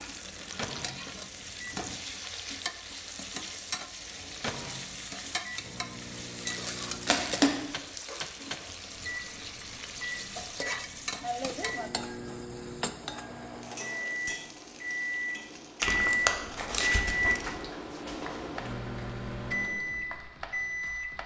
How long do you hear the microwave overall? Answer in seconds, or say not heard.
19 s.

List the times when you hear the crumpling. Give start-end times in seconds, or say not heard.
6.3-8.1, 15.8-17.6.